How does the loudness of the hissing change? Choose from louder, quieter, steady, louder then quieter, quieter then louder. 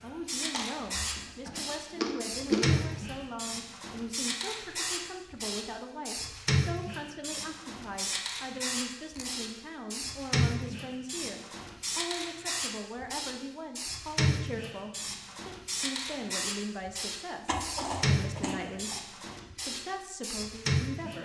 steady.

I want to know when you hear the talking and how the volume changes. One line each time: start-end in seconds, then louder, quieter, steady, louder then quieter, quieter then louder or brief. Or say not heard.
0.0-21.1 steady.